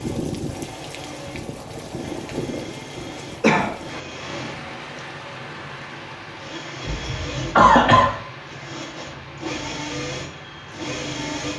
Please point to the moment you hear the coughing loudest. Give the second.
8 s.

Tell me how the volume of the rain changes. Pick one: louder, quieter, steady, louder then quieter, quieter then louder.
quieter.